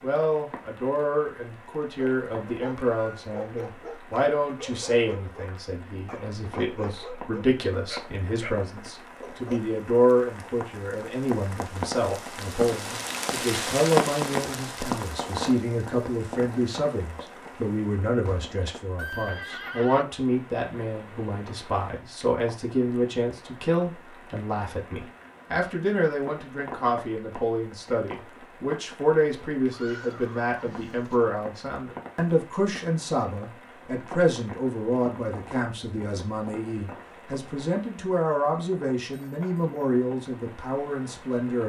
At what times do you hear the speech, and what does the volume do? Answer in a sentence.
You can hear the speech from 0.0 to 41.6 s, at a steady volume.